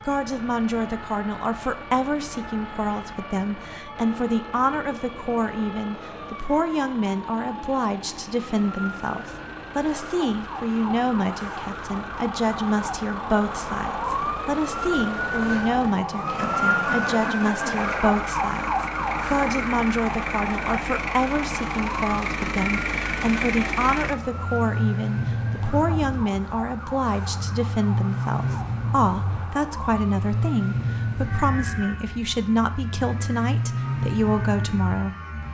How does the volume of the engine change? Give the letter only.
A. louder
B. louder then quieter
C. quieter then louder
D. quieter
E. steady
A.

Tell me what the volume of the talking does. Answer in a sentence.
The volume of the talking stays about the same.